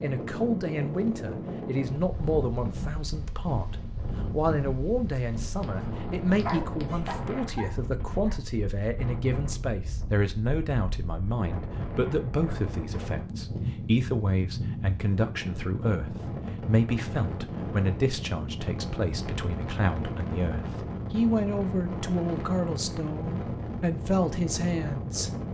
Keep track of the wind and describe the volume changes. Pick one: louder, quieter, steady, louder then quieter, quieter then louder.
steady.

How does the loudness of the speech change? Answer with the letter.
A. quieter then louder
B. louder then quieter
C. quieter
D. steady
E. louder
D.